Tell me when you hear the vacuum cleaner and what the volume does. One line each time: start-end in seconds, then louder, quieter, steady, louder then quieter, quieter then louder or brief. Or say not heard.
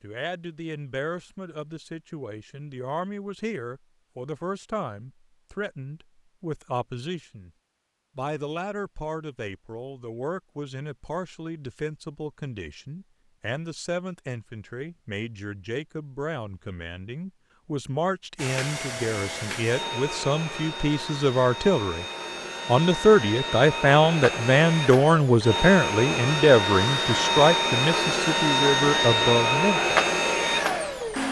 18.4-31.2 louder.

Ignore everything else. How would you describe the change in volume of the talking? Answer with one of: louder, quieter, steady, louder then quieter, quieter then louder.
louder.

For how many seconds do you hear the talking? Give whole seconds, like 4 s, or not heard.
29 s.